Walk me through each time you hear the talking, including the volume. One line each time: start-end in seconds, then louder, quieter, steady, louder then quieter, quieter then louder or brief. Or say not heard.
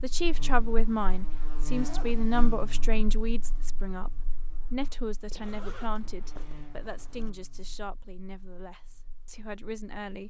0.0-10.2 quieter.